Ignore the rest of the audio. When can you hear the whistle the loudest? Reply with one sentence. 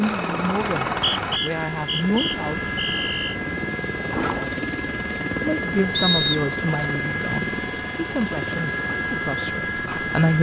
The loudest moment of the whistle is at 6 seconds.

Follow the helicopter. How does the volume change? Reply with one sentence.
The loudness of the helicopter stays about the same.